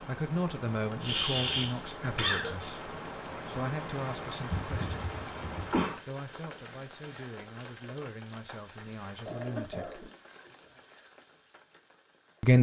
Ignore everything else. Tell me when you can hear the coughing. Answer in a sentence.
You can hear the coughing from 1.0 to 2.5 s, from 4.5 to 6.0 s and from 9.2 to 10.8 s.